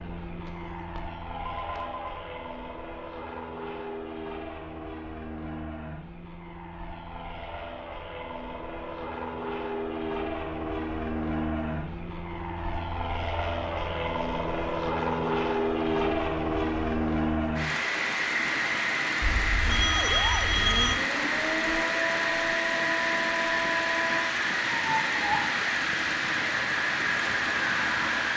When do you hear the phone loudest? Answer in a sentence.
The volume of the phone peaks at 21 seconds.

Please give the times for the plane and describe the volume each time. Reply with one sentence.
You can hear the plane from 0.0 to 28.3 s, getting louder.